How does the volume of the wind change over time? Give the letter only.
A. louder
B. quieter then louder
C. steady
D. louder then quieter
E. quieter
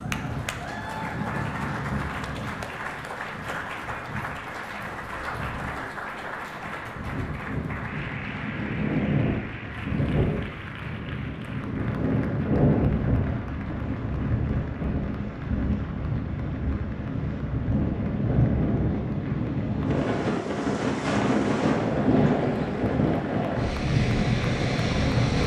A.